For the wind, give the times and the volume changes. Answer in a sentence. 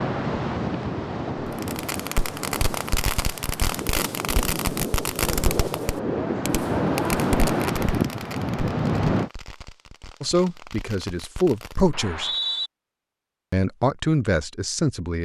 You can hear the wind from 0.0 to 9.3 s, getting quieter then louder.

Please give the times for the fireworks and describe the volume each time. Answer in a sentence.
The fireworks can be heard from 1.4 to 11.9 s, getting quieter.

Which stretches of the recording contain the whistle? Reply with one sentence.
The whistle can be heard from 11.9 to 12.7 s.